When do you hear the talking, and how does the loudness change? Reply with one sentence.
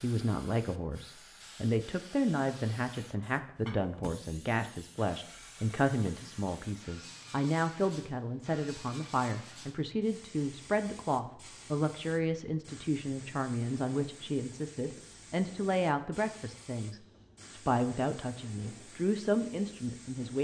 You can hear the talking from 0.0 to 20.4 s, at a steady volume.